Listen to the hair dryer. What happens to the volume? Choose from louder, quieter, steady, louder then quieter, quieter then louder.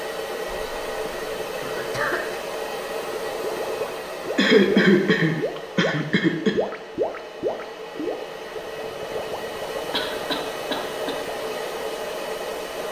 quieter then louder.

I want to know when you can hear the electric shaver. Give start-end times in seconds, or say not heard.
not heard.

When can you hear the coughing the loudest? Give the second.
5 s.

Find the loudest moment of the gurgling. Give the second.
7 s.